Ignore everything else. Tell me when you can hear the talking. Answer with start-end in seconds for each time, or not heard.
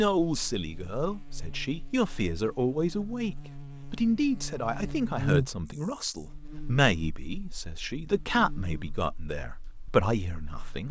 0.0-10.8.